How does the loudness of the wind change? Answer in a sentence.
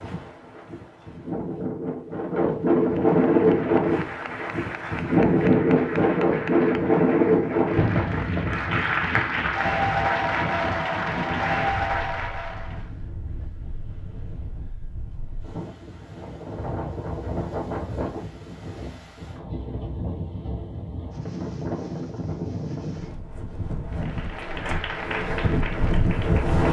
The volume of the wind goes down, then up.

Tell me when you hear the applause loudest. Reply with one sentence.
The loudest moment of the applause is at 10 seconds.